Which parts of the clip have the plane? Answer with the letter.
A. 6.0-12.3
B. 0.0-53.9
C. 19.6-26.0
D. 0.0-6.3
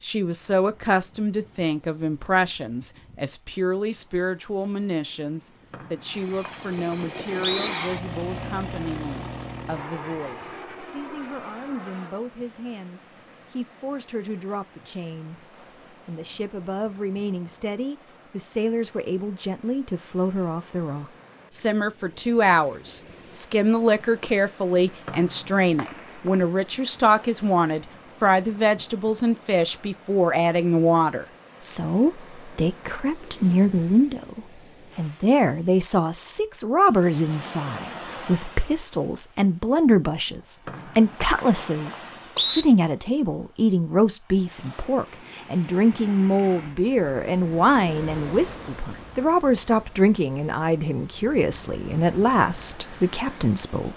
A.